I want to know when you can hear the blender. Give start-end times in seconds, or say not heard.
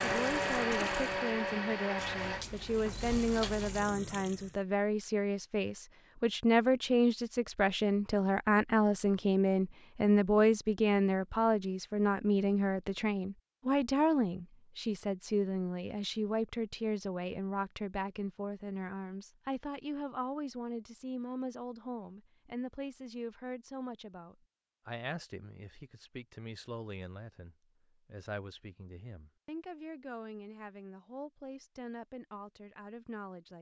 0.0-2.5.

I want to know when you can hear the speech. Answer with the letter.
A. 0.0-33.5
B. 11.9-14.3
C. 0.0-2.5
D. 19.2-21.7
A.